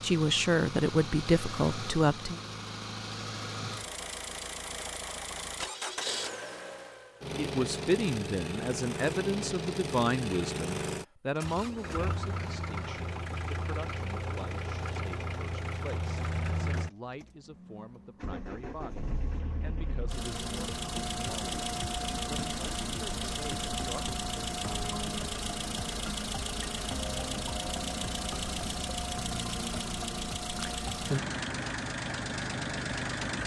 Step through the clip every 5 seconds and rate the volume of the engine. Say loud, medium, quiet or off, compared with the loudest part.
medium, loud, loud, medium, loud, loud, loud.